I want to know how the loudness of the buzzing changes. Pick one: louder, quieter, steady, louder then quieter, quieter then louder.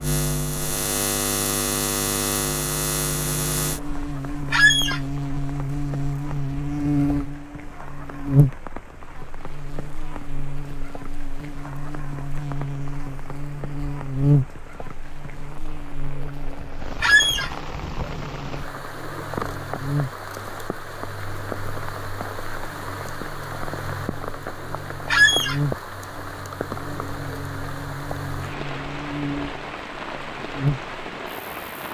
quieter.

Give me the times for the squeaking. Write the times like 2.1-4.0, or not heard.
4.5-5.0, 17.0-17.5, 25.1-25.6.